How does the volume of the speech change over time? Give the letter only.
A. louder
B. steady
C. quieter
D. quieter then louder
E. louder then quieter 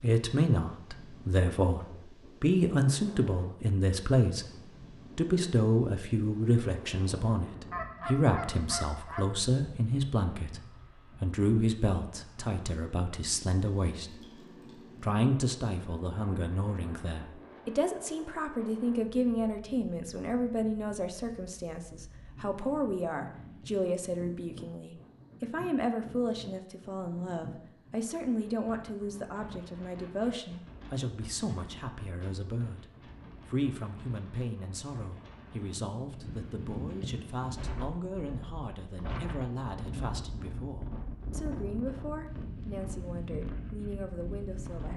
C.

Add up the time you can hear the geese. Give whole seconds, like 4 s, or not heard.
2 s.